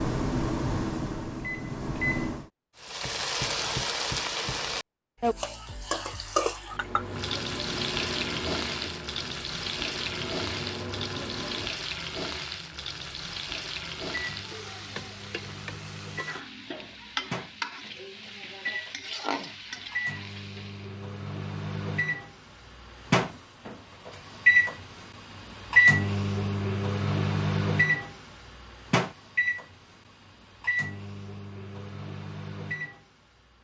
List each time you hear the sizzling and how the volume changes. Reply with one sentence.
You can hear the sizzling from 2.8 to 21.1 s, getting quieter.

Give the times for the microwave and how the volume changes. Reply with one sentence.
The microwave can be heard briefly from 0.0 to 2.5 s; from 6.7 to 11.8 s, getting quieter then louder; and from 14.1 to 33.5 s, getting louder then quieter.